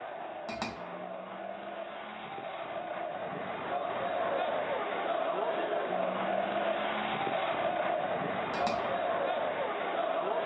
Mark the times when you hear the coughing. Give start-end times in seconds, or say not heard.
not heard.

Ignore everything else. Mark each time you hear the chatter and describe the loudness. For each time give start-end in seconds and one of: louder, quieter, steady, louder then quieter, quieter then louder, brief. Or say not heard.
0.0-10.4 louder.